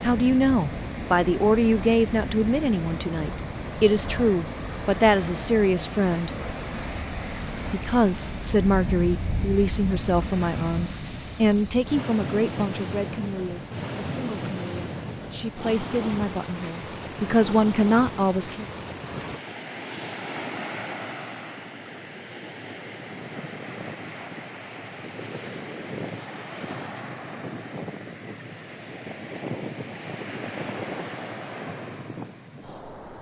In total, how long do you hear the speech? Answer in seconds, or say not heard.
17 s.